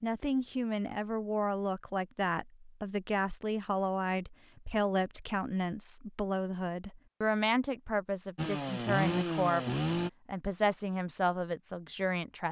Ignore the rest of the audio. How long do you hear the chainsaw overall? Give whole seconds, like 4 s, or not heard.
2 s.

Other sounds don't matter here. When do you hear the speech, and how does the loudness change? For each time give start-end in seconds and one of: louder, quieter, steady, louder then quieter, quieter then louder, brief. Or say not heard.
0.0-12.4 steady.